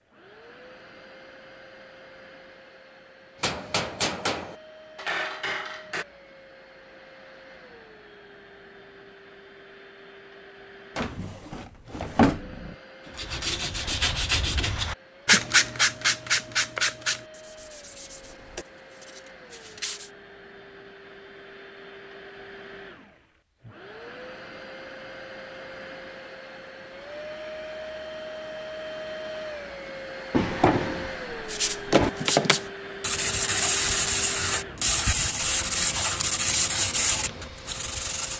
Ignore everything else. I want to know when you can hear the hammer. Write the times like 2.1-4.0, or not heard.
3.4-6.0.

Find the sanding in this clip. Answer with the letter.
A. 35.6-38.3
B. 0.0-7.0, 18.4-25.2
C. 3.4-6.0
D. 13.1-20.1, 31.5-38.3
D.